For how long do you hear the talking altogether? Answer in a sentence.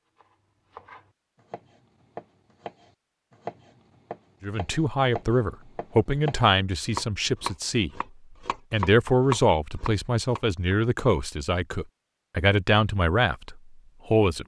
The talking can be heard for 9 seconds in total.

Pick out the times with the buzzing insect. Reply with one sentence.
You can't hear the buzzing insect here.